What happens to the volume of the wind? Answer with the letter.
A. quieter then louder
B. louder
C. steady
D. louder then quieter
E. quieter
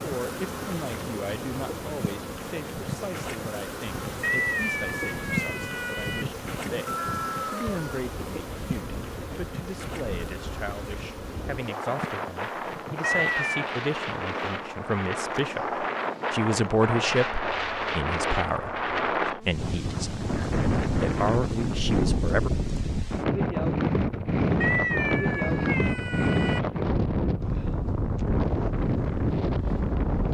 B.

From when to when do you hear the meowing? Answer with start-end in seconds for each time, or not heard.
4.2-6.2, 13.0-13.7, 24.6-26.6.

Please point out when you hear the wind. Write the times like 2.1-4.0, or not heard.
0.0-30.2.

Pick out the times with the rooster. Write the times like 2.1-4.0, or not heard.
6.8-8.0.